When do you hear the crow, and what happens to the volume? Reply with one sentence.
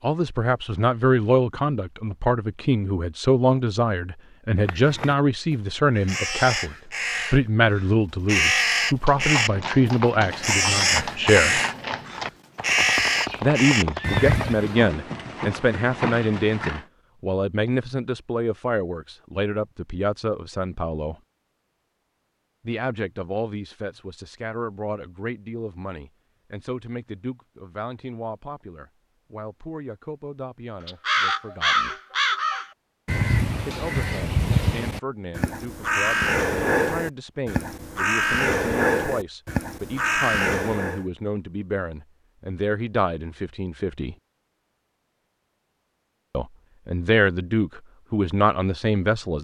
The crow can be heard from 4.6 to 14.8 s, getting louder; and from 30.9 to 41.0 s, at a steady volume.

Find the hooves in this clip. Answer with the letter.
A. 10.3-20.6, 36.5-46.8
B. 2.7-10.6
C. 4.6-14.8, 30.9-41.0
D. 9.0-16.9
D.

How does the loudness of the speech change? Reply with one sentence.
The volume of the speech goes down, then up.